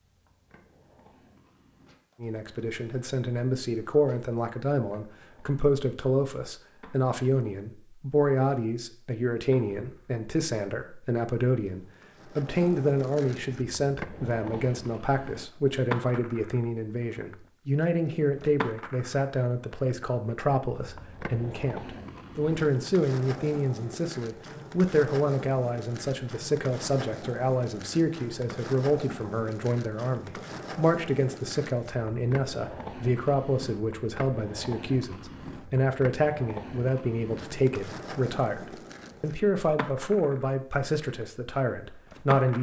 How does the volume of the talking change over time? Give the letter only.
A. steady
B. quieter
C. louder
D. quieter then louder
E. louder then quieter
A.